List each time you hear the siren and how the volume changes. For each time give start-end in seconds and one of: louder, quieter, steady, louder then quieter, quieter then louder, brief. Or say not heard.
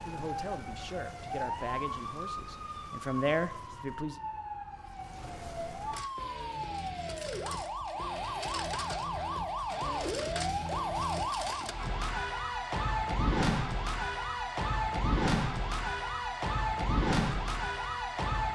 0.0-18.5 louder.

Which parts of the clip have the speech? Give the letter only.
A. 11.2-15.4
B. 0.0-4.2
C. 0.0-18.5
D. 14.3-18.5
B.